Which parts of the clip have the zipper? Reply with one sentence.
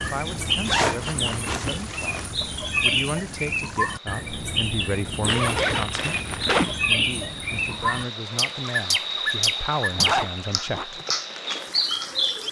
The zipper can be heard from 0.7 to 2.3 s, from 5.2 to 6.8 s and from 9.9 to 10.8 s.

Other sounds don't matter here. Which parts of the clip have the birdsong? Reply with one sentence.
The birdsong can be heard from 0.0 to 12.4 s.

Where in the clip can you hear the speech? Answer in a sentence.
The speech can be heard from 0.0 to 6.2 s and from 6.8 to 11.0 s.